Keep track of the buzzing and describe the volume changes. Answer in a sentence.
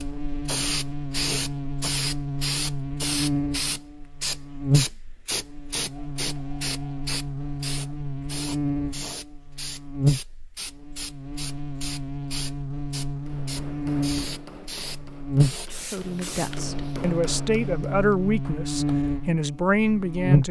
The volume of the buzzing stays about the same.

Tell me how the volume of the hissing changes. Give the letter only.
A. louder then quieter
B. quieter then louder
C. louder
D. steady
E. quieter
E.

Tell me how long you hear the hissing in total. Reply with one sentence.
The hissing can be heard for 17 seconds in total.